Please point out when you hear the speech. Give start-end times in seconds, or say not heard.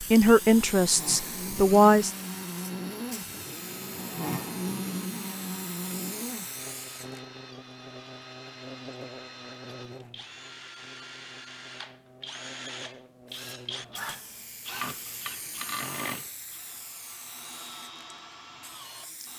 0.0-2.1.